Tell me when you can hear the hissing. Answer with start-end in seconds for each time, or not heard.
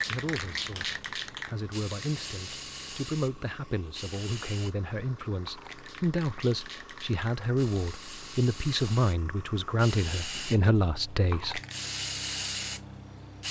0.0-13.4.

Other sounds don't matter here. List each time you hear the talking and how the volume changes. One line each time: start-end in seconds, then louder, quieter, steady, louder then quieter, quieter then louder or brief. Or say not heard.
0.0-11.6 louder.